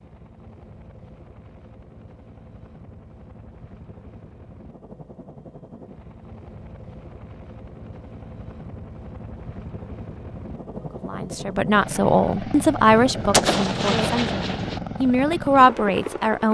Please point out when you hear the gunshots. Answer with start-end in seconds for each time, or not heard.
12.9-14.8.